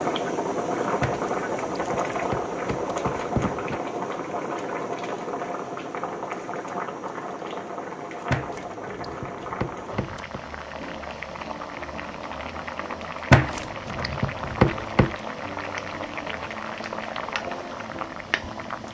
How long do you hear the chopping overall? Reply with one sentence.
You can hear the chopping for 7 seconds altogether.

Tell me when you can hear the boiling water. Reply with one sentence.
You can hear the boiling water from 0.0 to 18.8 s.